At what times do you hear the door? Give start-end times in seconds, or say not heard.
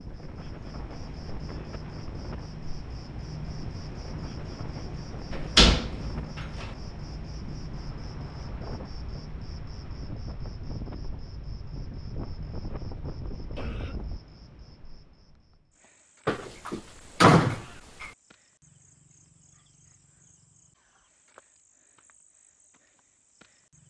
5.5-6.1, 16.2-18.1.